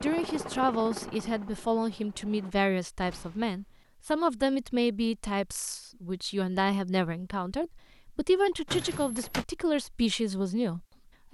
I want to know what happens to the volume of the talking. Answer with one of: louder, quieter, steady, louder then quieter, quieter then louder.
steady.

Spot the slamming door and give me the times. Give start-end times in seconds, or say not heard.
3.0-3.9, 8.7-9.4.